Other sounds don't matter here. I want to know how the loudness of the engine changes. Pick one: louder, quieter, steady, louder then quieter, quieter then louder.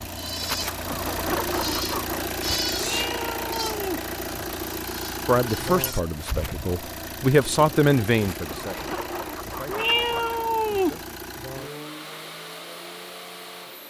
quieter.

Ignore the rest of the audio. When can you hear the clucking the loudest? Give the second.
1 s.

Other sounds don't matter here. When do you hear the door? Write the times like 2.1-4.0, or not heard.
not heard.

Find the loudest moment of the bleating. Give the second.
3 s.